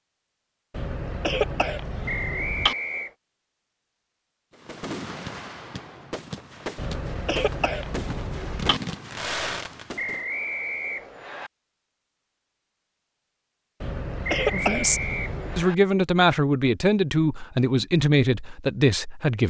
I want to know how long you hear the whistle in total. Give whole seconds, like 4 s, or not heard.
4 s.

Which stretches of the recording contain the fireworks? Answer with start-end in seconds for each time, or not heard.
4.5-10.2.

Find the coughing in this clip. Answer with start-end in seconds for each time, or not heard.
0.7-2.8, 6.8-8.8, 13.8-15.7.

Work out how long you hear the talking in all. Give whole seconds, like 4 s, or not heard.
5 s.